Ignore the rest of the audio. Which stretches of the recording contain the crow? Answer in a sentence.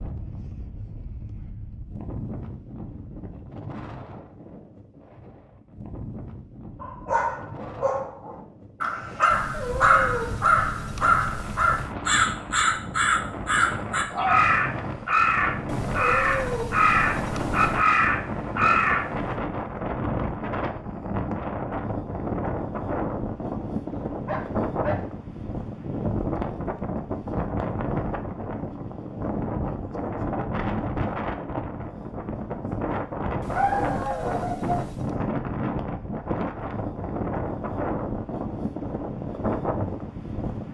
You can hear the crow from 8.8 to 19.1 s.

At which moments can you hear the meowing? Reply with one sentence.
You can hear the meowing from 9.3 to 11.9 s, from 15.7 to 17.9 s and from 33.4 to 35.1 s.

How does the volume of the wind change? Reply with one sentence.
The volume of the wind goes up.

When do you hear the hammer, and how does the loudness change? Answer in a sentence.
You can't hear the hammer here.